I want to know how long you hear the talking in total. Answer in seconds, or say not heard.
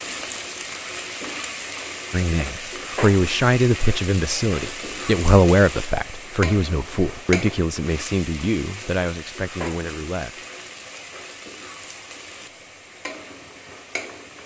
8 s.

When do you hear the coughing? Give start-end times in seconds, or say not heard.
not heard.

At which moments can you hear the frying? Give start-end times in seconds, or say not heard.
0.0-14.4.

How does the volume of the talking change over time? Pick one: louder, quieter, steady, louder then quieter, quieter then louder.
quieter.